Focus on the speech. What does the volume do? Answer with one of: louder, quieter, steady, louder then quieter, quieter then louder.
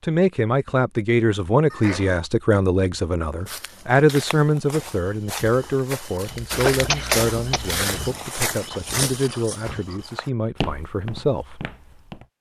quieter.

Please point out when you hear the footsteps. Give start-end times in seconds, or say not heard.
3.5-12.2.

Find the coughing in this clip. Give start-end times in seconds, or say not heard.
1.7-2.2, 6.5-7.8.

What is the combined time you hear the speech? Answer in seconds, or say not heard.
12 s.